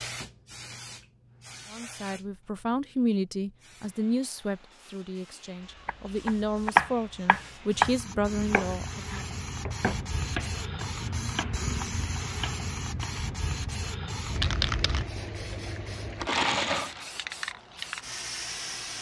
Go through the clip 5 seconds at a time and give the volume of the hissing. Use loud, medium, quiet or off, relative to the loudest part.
quiet, medium, loud, loud.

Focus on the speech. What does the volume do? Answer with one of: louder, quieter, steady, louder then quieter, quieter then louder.
quieter then louder.